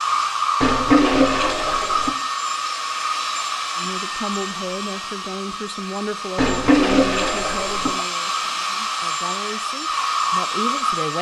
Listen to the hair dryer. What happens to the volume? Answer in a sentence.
The loudness of the hair dryer goes down, then up.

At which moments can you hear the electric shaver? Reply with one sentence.
You can't hear the electric shaver here.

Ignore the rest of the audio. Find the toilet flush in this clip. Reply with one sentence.
The toilet flush can be heard from 0.6 to 2.1 s and from 6.3 to 8.1 s.